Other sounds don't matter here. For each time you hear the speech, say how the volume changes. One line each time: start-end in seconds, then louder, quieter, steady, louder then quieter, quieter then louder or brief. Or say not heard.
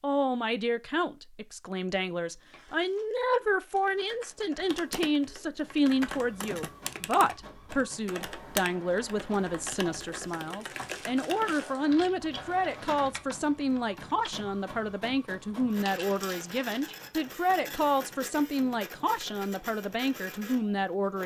0.0-21.2 steady.